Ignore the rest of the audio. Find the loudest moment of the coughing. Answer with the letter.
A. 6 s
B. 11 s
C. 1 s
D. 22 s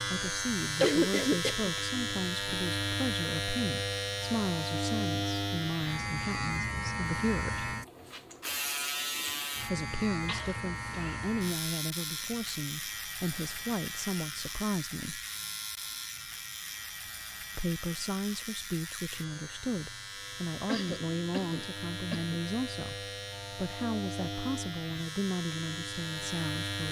C.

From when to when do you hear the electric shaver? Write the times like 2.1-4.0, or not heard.
0.0-26.8.